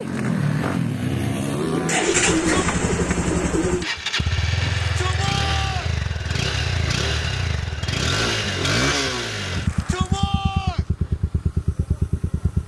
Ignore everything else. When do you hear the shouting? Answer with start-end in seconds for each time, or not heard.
2.1-2.7, 4.6-6.0, 9.5-10.9.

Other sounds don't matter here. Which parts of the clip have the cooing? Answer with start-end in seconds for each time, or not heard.
1.5-3.9.